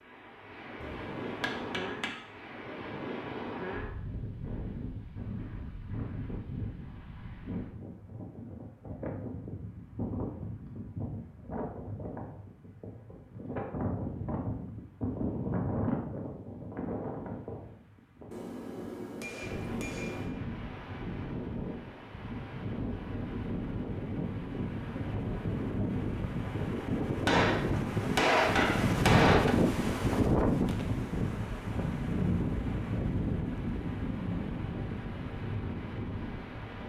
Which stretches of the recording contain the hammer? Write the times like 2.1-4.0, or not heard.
0.8-2.1, 18.3-20.4, 27.2-29.6.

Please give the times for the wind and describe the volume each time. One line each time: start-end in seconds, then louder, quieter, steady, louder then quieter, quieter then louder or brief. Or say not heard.
0.0-36.8 louder.